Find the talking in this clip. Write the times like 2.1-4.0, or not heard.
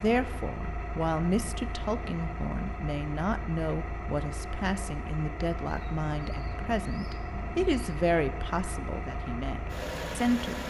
0.0-10.6.